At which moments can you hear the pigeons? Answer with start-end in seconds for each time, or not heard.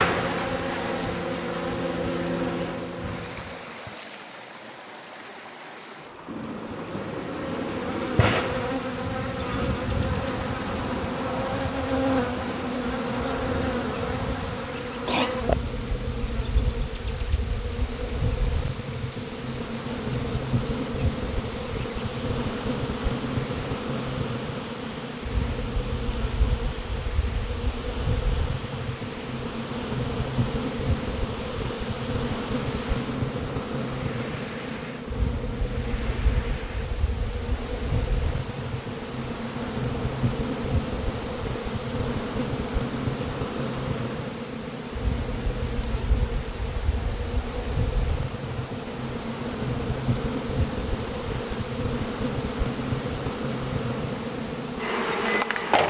6.2-8.3.